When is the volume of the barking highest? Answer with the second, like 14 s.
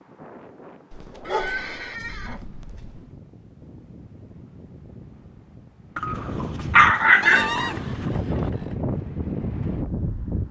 7 s.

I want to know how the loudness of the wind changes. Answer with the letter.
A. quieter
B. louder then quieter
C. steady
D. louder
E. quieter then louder
D.